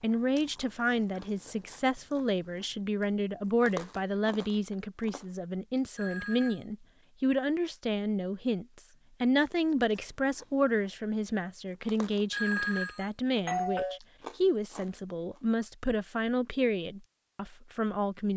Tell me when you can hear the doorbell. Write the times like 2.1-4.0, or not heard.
6.0-6.6, 12.3-14.0.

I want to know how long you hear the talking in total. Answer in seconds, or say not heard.
18 s.